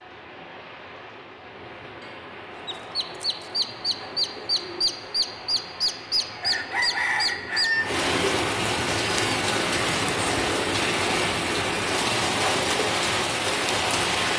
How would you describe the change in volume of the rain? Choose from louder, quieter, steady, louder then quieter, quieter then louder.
louder.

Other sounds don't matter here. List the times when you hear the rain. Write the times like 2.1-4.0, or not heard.
0.0-14.3.